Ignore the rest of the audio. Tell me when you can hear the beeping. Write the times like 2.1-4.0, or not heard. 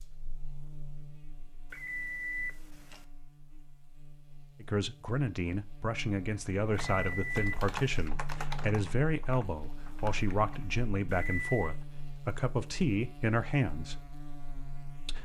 1.7-3.0, 6.8-8.1, 11.1-11.8.